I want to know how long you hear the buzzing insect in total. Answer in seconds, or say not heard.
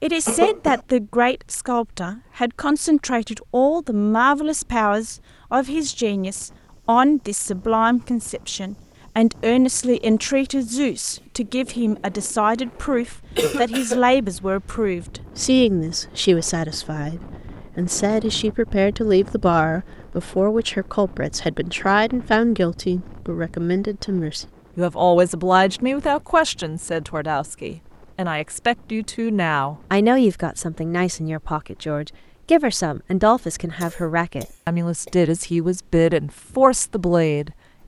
not heard.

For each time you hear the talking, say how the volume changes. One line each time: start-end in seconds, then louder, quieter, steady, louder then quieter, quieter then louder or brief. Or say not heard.
0.0-37.5 steady.